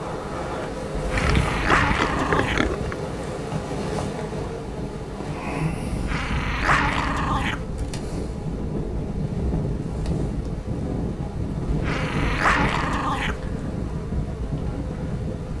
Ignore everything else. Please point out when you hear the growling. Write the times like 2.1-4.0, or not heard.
0.9-2.7, 5.9-7.7, 11.7-13.4.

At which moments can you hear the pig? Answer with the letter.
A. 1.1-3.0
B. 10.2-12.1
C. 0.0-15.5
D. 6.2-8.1
A.